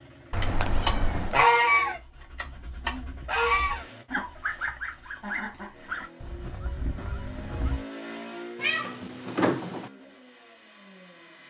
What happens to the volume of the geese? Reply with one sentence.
The volume of the geese goes down.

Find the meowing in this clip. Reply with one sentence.
You can hear the meowing from 0.3 to 1.4 s and from 8.6 to 9.9 s.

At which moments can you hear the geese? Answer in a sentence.
The geese can be heard from 0.4 to 7.8 s.